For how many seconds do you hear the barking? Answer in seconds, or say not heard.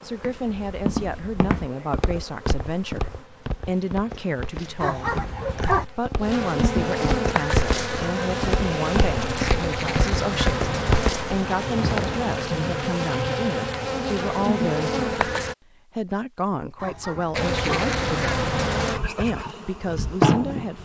2 s.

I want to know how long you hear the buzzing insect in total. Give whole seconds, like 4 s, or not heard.
19 s.